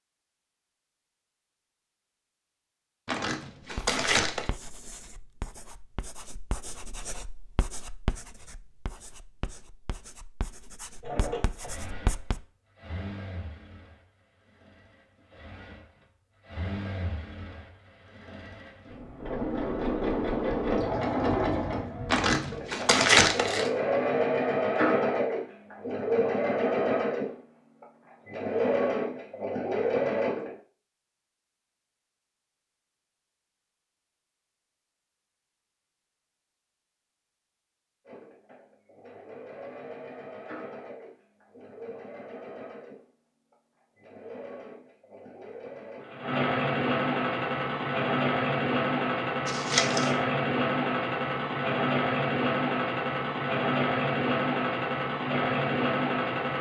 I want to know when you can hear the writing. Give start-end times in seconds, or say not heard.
3.7-12.4.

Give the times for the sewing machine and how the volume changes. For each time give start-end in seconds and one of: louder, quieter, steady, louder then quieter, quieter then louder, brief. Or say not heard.
11.0-30.6 louder
38.0-56.5 louder.